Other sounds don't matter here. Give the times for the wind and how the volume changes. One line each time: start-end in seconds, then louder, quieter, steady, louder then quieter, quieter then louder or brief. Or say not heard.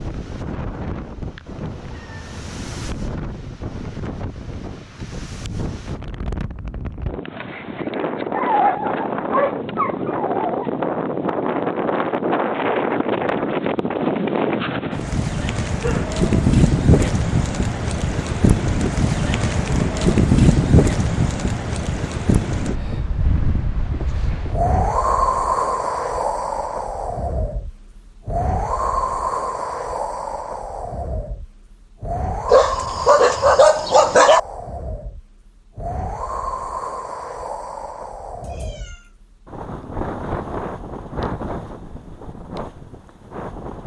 0.0-43.8 louder then quieter.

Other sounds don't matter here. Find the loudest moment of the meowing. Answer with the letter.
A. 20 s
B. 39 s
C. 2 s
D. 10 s
C.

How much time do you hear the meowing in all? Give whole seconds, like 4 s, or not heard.
2 s.